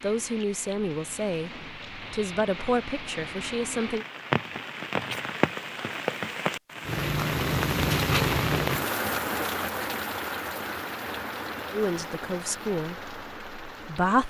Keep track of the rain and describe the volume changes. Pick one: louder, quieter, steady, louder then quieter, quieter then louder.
louder then quieter.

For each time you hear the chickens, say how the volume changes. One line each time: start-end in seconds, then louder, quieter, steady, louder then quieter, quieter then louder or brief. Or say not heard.
not heard.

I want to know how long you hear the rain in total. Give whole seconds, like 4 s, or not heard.
14 s.